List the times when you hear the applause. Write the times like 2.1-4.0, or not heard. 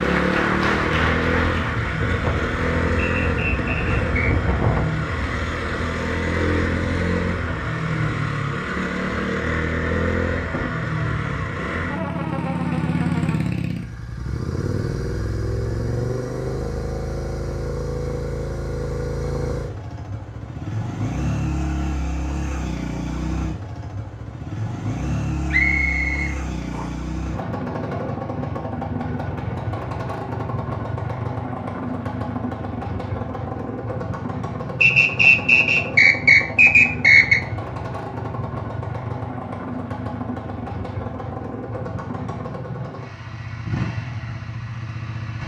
0.0-1.9.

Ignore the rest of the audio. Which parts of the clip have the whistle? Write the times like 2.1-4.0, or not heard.
3.0-4.5, 25.5-26.9, 34.8-37.4.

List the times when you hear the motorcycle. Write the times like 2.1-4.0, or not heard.
0.0-45.4.